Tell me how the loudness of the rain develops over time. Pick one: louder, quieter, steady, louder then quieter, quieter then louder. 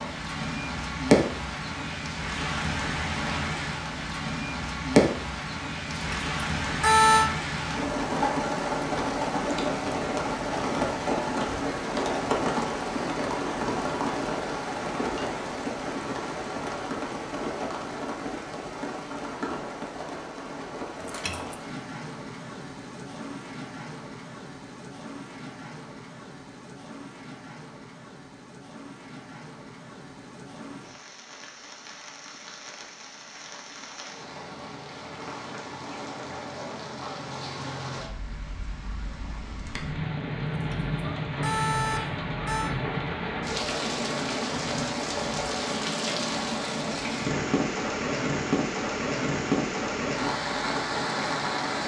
quieter then louder.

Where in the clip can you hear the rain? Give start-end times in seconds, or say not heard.
0.0-51.8.